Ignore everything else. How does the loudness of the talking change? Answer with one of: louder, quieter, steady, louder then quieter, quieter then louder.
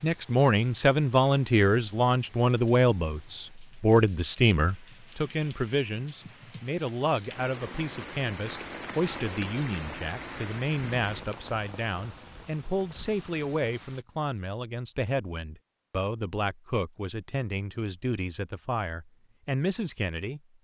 quieter.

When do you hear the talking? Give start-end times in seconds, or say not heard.
0.0-20.4.